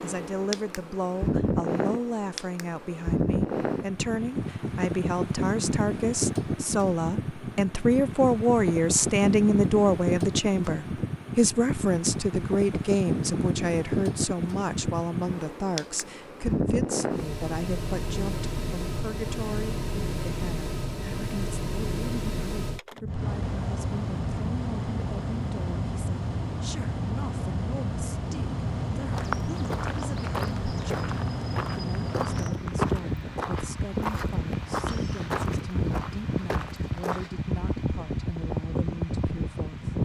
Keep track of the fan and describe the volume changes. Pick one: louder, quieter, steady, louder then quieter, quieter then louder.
steady.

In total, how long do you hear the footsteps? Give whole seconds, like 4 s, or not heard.
8 s.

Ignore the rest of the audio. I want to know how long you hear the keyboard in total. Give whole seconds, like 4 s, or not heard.
not heard.